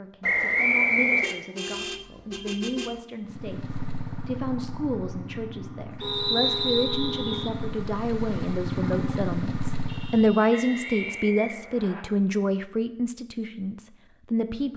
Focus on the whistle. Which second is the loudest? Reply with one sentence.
The loudest moment of the whistle is at 1 second.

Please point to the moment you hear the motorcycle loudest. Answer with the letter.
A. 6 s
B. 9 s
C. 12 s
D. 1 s
B.